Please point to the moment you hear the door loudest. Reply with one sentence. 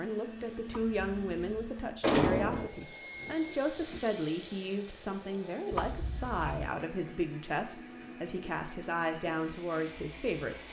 The loudest moment of the door is at 2 seconds.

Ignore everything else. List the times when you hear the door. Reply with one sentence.
The door can be heard from 0.7 to 2.7 s and from 5.7 to 6.6 s.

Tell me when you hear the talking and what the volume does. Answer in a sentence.
The talking can be heard from 0.0 to 10.6 s, at a steady volume.